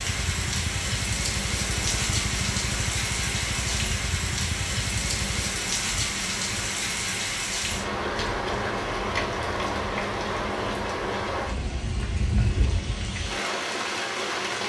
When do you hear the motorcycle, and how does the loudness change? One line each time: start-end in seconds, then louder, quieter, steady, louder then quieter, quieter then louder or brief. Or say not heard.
0.0-5.6 steady.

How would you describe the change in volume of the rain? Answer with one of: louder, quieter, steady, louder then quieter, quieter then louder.
steady.